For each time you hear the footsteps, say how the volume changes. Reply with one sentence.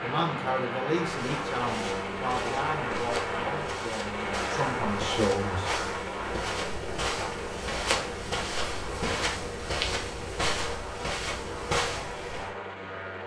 You can hear the footsteps from 1.1 to 12.5 s, getting louder.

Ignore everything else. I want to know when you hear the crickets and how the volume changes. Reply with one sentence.
You can't hear the crickets here.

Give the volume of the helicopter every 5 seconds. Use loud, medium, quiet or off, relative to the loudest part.
loud, loud, medium.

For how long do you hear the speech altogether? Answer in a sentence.
The speech can be heard for 6 seconds in total.